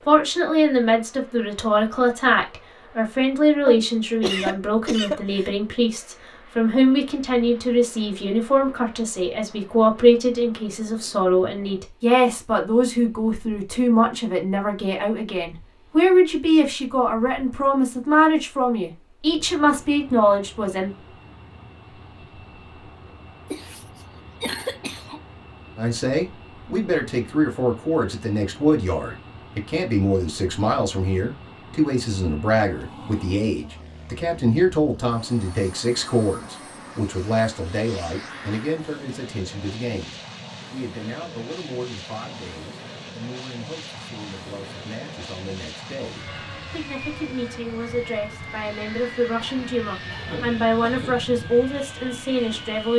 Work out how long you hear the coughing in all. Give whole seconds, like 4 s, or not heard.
5 s.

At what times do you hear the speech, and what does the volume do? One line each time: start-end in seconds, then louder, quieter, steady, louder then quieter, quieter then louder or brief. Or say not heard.
0.1-20.9 steady
25.8-52.9 quieter then louder.